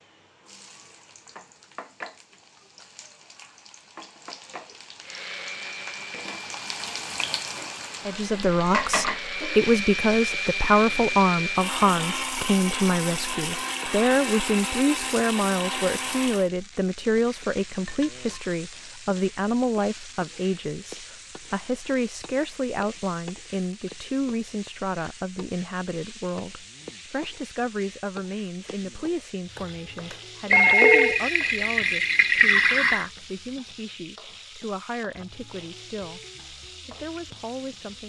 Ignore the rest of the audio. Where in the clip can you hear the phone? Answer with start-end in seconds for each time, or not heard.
29.6-31.2.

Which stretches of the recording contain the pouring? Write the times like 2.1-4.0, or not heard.
30.5-33.0.